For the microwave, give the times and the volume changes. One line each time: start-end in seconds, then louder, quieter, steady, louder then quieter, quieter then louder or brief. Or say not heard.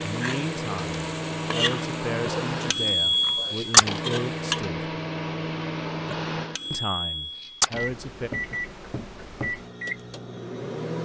0.0-11.0 louder then quieter.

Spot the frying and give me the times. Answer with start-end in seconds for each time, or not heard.
0.0-4.7.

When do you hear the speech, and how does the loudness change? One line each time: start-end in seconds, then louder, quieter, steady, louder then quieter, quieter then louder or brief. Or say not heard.
0.0-4.8 steady
6.7-8.3 brief.